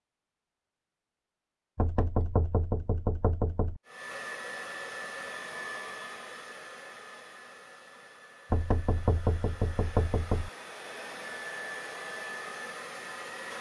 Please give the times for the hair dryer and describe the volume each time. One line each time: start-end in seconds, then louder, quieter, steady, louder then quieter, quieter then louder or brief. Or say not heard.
3.9-13.5 quieter then louder.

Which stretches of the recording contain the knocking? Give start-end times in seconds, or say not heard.
1.8-3.8, 8.5-10.5.